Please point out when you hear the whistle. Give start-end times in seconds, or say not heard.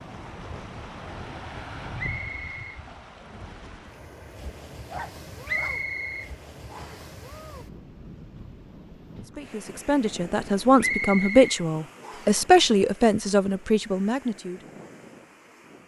1.9-2.8, 5.5-7.0, 10.8-12.4.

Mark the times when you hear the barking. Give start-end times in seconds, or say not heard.
4.3-5.8.